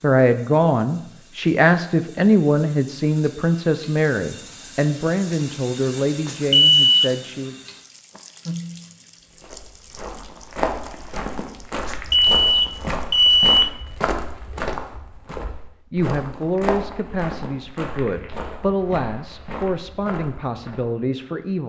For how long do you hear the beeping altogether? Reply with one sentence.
The beeping can be heard for 3 seconds in total.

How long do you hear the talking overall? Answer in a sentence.
The talking can be heard for 13 seconds in total.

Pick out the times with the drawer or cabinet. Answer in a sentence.
You can't hear the drawer or cabinet here.